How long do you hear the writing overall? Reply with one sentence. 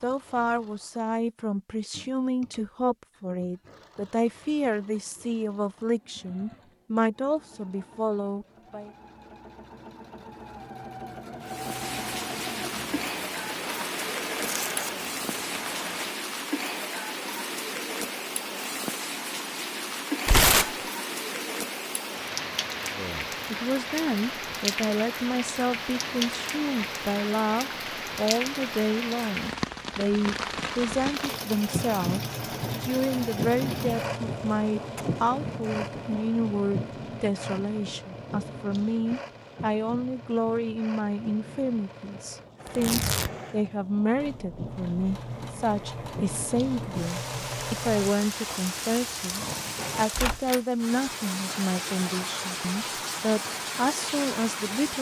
The writing can't be heard in this clip.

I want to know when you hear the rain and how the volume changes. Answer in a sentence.
You can hear the rain from 11.4 to 54.9 s, getting quieter then louder.